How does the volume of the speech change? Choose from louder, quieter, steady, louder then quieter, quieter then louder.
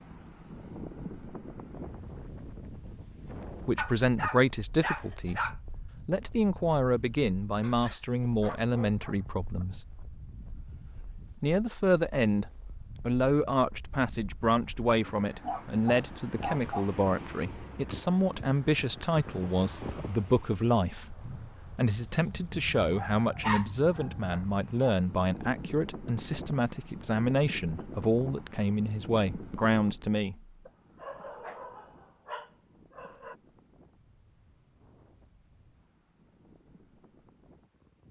steady.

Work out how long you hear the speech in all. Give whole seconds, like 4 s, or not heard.
25 s.